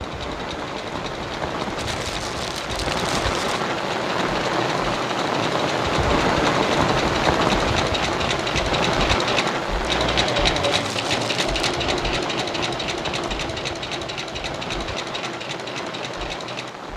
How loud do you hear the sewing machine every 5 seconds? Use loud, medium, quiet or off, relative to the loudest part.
medium, loud, loud, medium.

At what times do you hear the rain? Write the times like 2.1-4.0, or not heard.
0.0-16.9.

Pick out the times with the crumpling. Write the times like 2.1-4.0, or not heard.
1.8-3.6, 10.6-11.5.